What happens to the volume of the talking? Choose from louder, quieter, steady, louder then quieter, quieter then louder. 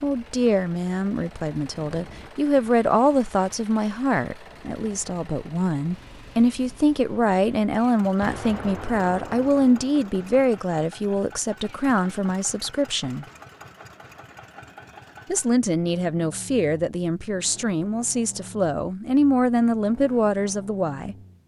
steady.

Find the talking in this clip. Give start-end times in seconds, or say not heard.
0.0-13.2, 15.3-21.1.